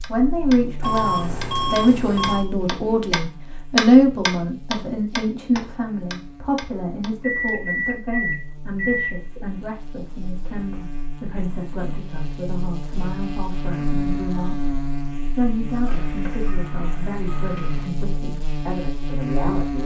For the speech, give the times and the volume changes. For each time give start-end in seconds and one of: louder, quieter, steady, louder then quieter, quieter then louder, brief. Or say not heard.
0.1-19.8 quieter.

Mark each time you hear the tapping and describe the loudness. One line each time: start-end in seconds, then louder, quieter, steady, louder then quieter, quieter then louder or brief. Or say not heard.
0.0-7.5 louder then quieter.